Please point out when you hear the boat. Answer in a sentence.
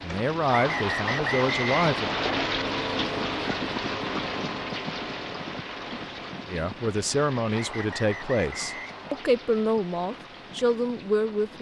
You can hear the boat from 0.0 to 11.5 s.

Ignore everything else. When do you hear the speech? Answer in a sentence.
You can hear the speech from 0.0 to 2.1 s and from 6.5 to 11.5 s.